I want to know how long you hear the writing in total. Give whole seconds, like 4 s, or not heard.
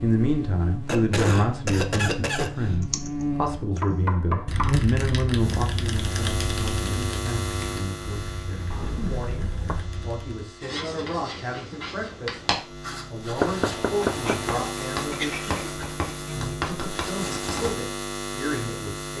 7 s.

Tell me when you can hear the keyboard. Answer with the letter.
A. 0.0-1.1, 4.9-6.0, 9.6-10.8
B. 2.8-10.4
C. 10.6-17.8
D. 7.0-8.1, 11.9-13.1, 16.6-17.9
B.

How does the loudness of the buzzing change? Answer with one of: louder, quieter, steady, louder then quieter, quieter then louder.
quieter then louder.